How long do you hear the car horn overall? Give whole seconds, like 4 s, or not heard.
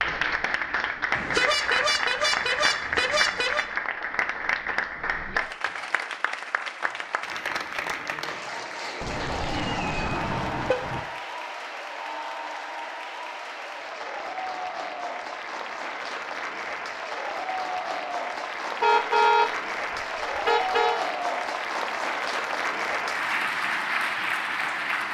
6 s.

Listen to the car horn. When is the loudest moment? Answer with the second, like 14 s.
19 s.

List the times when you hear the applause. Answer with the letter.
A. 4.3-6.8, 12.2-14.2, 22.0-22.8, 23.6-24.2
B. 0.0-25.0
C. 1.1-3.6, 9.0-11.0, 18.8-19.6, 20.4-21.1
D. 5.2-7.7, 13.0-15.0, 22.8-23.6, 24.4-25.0
B.